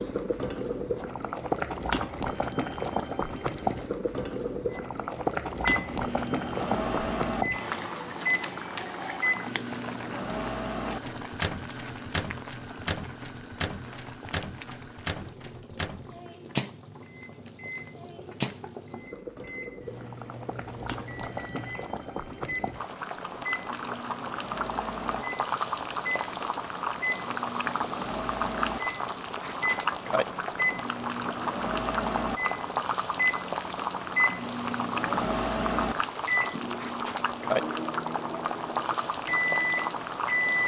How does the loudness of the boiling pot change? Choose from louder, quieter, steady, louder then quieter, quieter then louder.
quieter then louder.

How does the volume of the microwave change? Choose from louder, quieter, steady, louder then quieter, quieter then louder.
quieter then louder.